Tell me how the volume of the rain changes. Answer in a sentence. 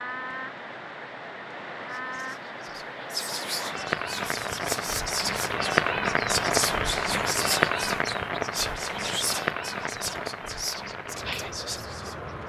The loudness of the rain goes up, then down.